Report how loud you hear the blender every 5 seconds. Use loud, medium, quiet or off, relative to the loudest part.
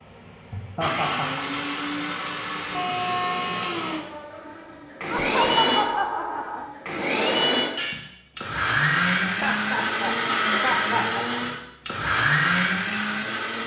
medium, loud, loud.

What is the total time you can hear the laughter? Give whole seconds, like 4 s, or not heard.
4 s.